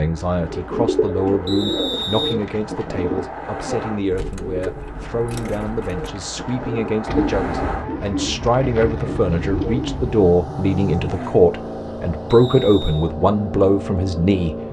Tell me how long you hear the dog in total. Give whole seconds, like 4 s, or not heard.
not heard.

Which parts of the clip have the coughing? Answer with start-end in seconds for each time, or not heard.
not heard.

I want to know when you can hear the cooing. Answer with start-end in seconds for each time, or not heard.
0.2-10.2.